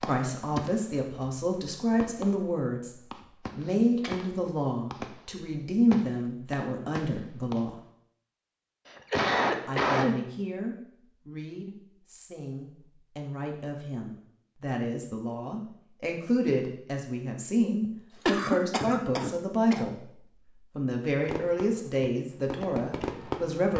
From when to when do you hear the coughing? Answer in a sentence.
You can hear the coughing from 3.6 to 4.2 s, from 8.8 to 10.2 s and from 17.9 to 20.0 s.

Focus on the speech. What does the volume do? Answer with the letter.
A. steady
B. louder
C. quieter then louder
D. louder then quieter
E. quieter
C.